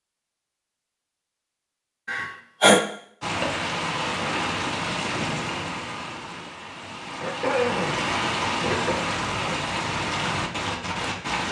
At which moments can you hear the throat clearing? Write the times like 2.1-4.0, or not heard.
2.0-2.8, 7.2-9.8.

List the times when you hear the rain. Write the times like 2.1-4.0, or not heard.
3.2-11.4.